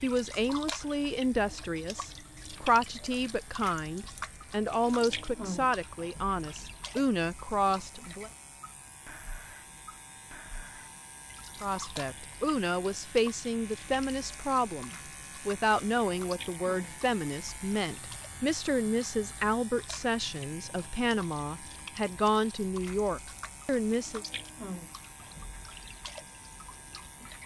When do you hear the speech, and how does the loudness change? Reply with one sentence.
You can hear the speech from 0.0 to 8.3 s, at a steady volume; and from 11.6 to 24.2 s, at a steady volume.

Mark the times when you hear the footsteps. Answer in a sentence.
You can't hear the footsteps here.